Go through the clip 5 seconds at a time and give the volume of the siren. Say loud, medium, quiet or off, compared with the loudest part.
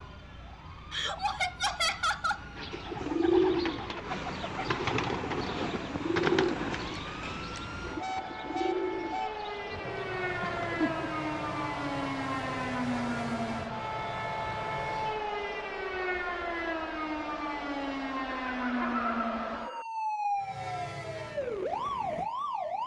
quiet, medium, loud, loud, loud.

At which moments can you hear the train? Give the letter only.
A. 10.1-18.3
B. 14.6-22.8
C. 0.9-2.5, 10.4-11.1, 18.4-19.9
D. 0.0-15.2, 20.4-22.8
D.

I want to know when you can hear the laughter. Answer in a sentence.
You can hear the laughter from 0.9 to 2.5 s, from 10.4 to 11.1 s and from 18.4 to 19.9 s.